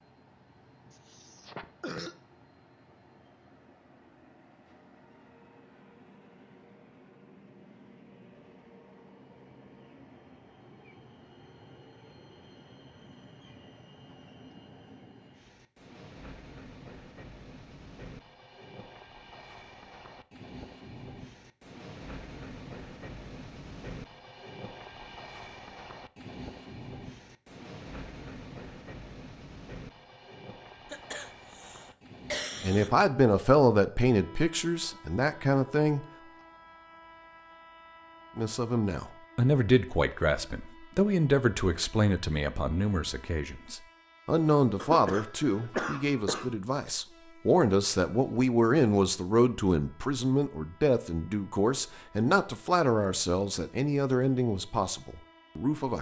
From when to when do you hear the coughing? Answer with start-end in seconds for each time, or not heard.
0.9-2.1, 30.9-32.9, 44.8-46.5.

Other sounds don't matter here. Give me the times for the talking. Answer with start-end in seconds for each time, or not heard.
32.6-36.0, 38.4-55.9.